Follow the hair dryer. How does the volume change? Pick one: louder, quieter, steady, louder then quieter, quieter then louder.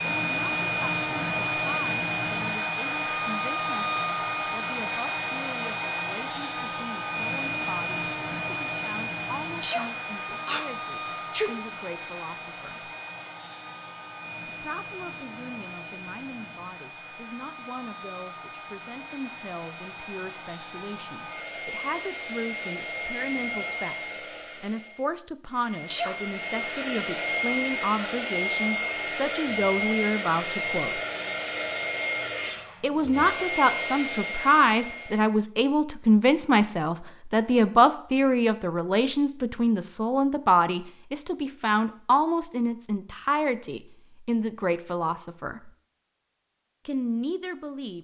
quieter then louder.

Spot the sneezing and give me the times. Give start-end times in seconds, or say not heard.
9.6-11.5, 25.9-26.9.